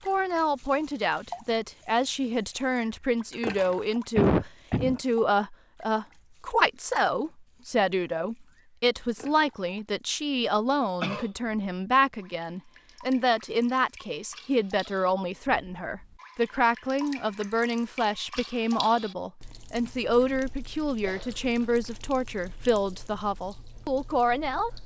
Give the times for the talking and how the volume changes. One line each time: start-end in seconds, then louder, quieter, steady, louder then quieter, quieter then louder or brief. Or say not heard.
0.1-24.7 steady.